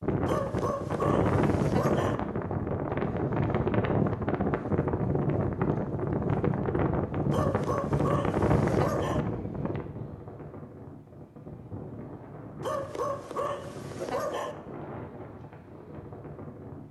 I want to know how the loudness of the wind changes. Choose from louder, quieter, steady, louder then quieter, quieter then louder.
quieter.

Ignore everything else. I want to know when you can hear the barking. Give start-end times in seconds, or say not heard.
0.2-2.1, 7.3-9.2, 12.6-14.6.